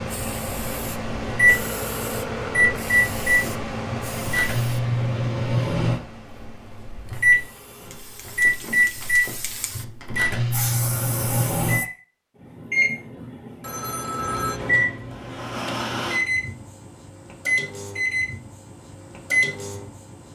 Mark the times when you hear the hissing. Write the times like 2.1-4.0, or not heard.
0.0-11.8.